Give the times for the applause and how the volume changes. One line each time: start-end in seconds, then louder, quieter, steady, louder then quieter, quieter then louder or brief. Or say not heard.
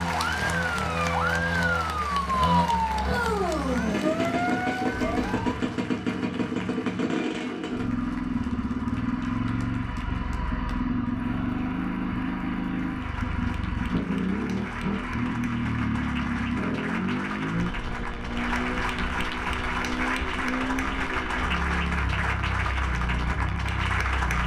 0.0-24.4 quieter then louder.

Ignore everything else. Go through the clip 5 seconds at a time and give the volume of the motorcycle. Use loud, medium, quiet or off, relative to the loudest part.
loud, loud, loud, loud, medium.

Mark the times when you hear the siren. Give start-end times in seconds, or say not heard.
0.1-5.6.